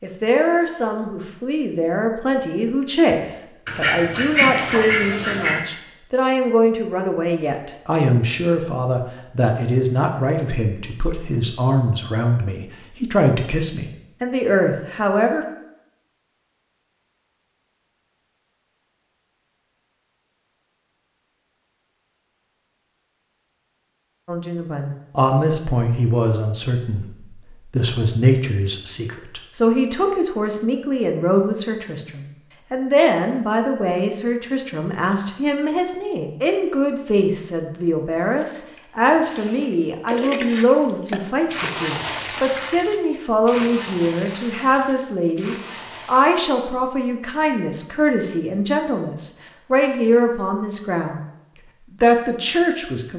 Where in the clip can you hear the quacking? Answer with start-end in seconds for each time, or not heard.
3.6-5.6.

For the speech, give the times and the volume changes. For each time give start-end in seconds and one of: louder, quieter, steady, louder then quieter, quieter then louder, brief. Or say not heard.
0.0-15.4 steady
24.2-51.2 steady
51.9-53.1 brief.